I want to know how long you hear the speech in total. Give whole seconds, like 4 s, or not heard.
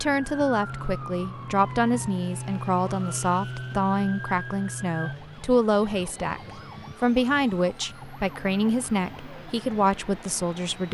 10 s.